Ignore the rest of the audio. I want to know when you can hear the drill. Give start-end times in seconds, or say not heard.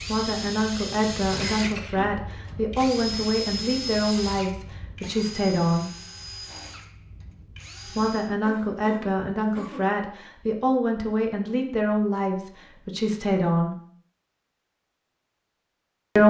0.0-8.3.